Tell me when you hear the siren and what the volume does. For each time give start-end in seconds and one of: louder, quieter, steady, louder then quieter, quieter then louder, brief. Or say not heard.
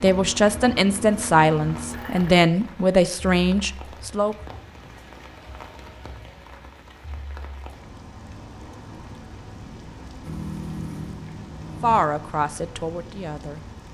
not heard.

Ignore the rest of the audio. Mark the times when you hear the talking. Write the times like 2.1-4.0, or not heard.
0.0-4.3, 11.8-13.7.